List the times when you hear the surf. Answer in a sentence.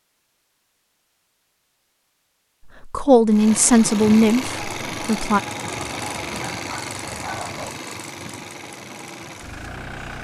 You can't hear the surf here.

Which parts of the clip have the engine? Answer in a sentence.
You can hear the engine from 3.3 to 10.1 s.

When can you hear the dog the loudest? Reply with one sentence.
The volume of the dog peaks at 7 seconds.